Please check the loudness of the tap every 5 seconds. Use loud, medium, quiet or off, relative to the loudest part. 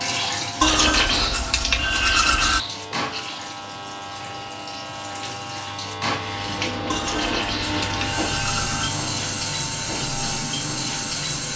medium, loud, loud.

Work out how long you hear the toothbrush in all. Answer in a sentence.
The toothbrush can be heard for 4 seconds in total.